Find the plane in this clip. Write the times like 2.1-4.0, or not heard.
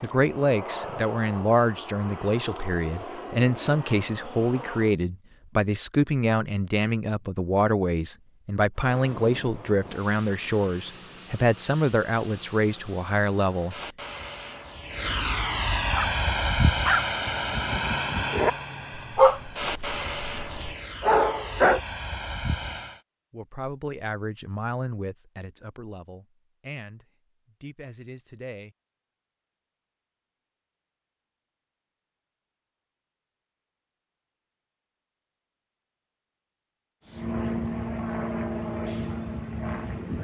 0.0-5.0, 8.8-23.0, 37.0-40.1.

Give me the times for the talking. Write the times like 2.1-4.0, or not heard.
0.0-13.8, 23.3-28.8.